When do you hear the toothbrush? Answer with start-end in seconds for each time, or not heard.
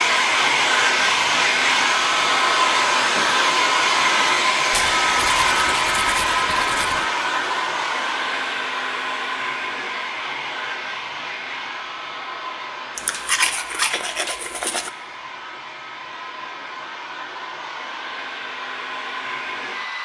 4.7-7.0, 12.9-14.9.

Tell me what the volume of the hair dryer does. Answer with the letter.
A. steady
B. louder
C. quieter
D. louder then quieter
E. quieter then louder
C.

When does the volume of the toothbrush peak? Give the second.
13 s.